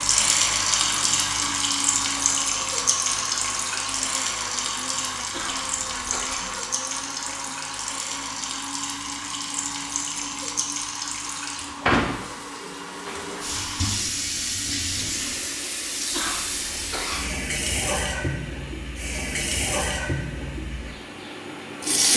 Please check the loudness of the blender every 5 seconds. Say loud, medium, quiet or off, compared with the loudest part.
loud, loud, medium, medium, medium.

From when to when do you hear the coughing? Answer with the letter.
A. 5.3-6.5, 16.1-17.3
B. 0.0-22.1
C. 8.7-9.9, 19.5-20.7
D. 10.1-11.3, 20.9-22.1
A.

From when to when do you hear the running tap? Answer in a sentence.
The running tap can be heard from 0.0 to 22.1 s.